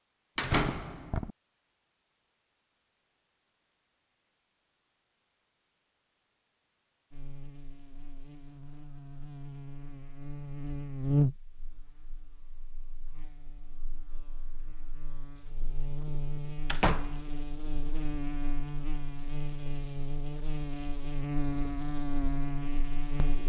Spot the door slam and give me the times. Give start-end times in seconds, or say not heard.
0.3-1.3, 16.6-17.2.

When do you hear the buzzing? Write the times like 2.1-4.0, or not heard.
7.1-23.4.